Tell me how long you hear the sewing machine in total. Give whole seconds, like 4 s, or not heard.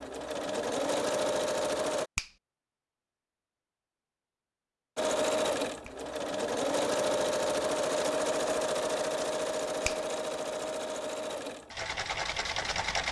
10 s.